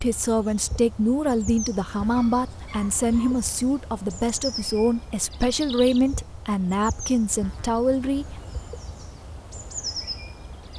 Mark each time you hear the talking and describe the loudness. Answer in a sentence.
The talking can be heard from 0.0 to 8.4 s, at a steady volume.